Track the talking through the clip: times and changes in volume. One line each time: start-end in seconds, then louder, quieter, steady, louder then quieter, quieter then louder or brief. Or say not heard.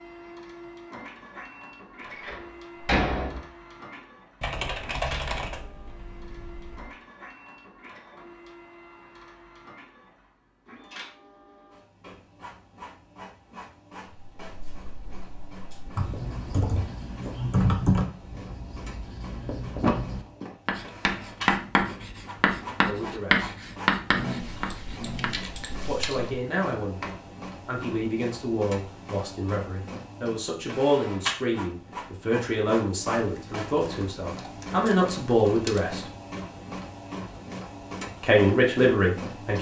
22.8-23.5 brief
25.9-36.0 louder
38.2-39.5 brief.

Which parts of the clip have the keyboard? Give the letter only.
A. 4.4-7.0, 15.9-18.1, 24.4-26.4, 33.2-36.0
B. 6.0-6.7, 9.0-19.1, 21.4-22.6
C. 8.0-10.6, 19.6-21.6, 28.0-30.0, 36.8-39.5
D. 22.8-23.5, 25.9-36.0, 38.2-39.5
A.